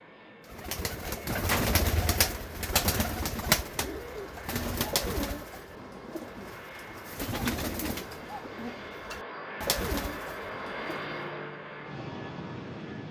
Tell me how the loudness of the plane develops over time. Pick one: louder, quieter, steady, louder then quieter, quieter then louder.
louder.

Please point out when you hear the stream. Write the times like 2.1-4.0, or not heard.
not heard.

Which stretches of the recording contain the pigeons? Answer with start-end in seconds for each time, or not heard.
0.5-11.2.